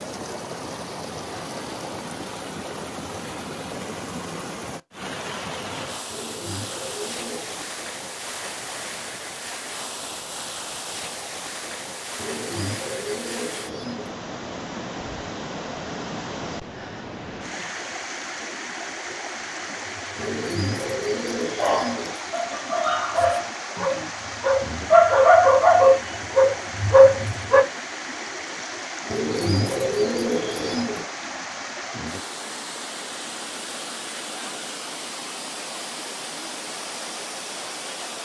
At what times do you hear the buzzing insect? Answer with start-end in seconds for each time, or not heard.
not heard.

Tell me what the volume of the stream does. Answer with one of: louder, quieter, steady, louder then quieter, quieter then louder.
steady.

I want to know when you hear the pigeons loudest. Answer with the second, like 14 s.
30 s.